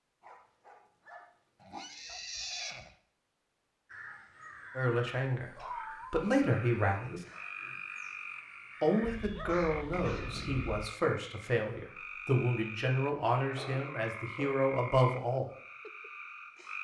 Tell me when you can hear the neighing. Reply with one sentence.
You can hear the neighing from 1.6 to 3.0 s.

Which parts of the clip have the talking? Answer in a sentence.
The talking can be heard from 4.8 to 7.2 s and from 8.8 to 15.5 s.